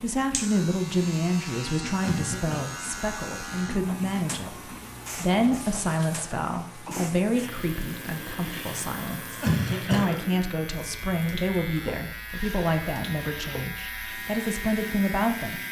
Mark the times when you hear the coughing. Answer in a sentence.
You can hear the coughing from 2.0 to 2.6 s and from 9.4 to 10.2 s.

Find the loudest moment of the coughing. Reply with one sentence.
The loudest moment of the coughing is at 10 seconds.